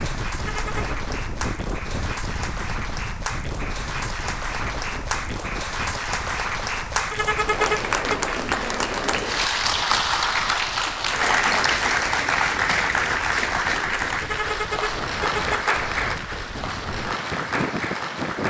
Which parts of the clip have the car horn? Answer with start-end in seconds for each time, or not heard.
0.3-1.0, 7.1-8.2, 14.2-15.8.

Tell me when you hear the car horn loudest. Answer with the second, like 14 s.
8 s.